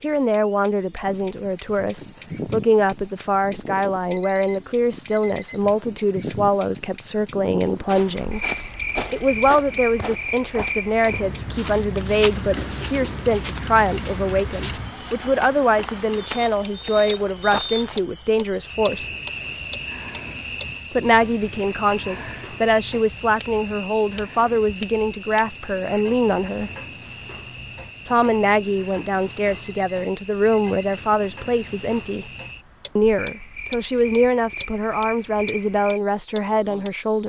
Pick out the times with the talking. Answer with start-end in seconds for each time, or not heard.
0.0-8.4, 9.1-19.1, 20.9-26.7, 28.1-32.2, 33.0-37.2.